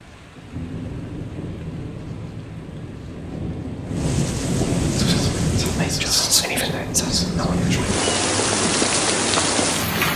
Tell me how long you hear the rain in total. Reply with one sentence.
The rain can be heard for 10 seconds in total.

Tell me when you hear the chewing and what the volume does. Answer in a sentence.
The chewing can't be heard in this clip.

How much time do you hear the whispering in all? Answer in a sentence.
You can hear the whispering for 3 seconds altogether.